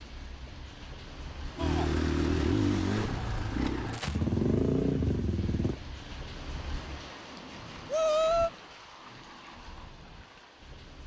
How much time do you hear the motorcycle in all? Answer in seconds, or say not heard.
4 s.